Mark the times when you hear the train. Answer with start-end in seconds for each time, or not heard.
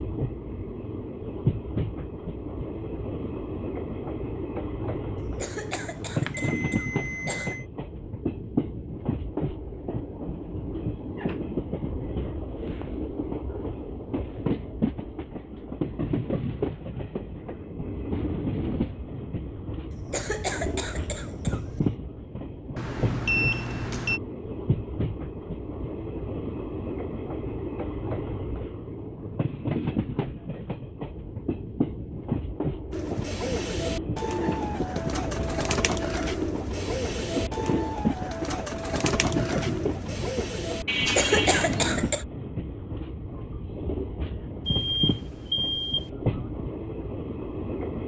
0.0-48.0.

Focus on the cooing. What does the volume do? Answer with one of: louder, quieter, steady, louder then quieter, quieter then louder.
steady.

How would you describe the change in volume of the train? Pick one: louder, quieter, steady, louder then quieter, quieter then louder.
steady.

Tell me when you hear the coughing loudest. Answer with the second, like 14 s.
41 s.